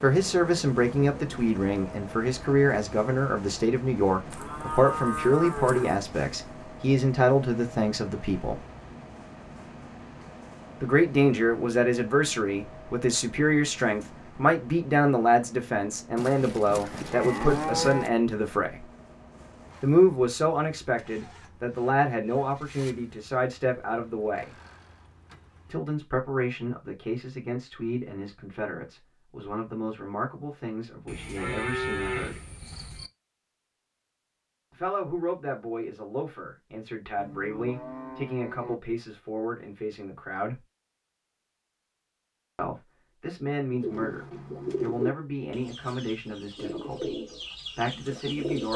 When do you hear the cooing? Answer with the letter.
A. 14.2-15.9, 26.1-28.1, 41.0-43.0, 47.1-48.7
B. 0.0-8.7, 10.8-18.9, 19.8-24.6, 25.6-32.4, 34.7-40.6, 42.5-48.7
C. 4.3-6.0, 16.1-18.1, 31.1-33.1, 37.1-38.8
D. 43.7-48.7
D.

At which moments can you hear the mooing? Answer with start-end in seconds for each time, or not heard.
4.3-6.0, 16.1-18.1, 31.1-33.1, 37.1-38.8.